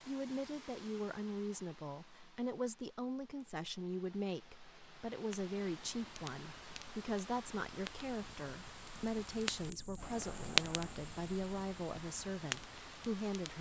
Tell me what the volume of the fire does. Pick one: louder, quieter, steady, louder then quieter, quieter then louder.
louder then quieter.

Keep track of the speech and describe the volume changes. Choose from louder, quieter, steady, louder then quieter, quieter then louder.
steady.